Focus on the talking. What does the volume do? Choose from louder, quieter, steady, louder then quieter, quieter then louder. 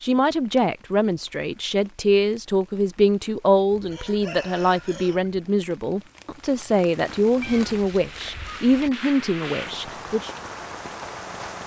steady.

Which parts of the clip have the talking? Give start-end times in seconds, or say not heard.
0.0-10.3.